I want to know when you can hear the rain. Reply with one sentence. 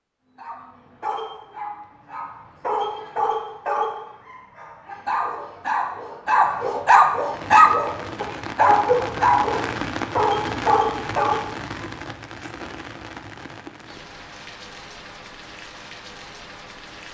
The rain can be heard from 7.3 to 17.1 s.